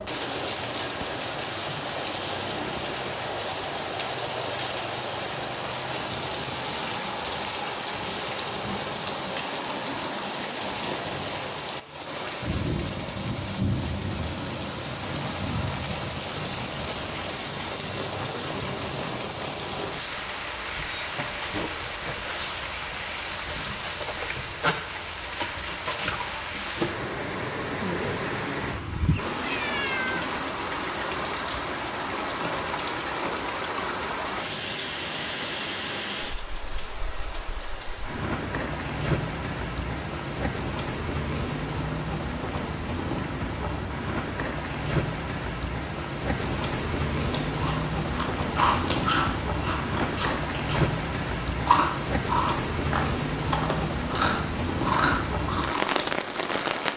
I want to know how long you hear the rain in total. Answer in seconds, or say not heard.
57 s.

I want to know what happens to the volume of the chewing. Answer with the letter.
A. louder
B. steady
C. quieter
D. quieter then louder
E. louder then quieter
B.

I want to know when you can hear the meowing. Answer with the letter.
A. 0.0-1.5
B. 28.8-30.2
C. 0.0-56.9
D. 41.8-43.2
B.